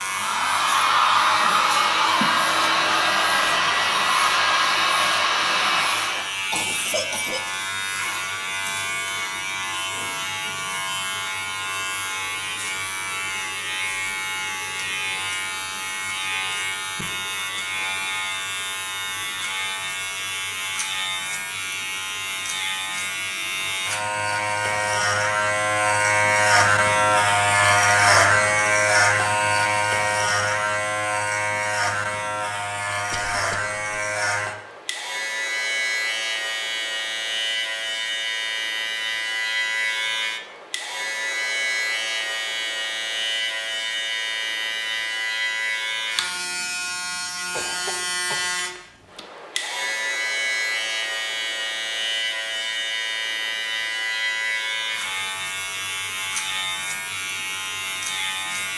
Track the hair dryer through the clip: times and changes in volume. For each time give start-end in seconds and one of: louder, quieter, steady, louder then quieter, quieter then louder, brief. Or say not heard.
0.0-6.3 steady.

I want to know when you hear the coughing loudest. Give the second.
7 s.